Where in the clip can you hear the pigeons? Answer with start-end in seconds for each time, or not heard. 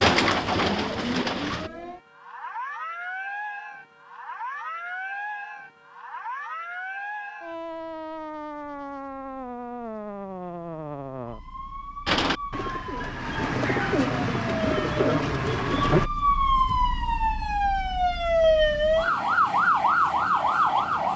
0.0-1.7, 12.1-16.1.